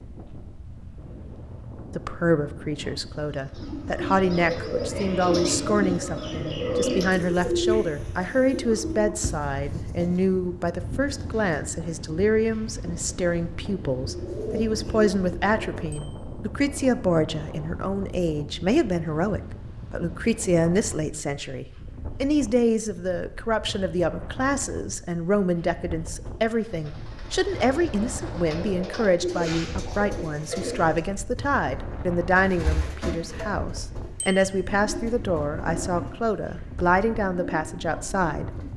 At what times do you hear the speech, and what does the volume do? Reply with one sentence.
The speech can be heard from 1.9 to 38.5 s, at a steady volume.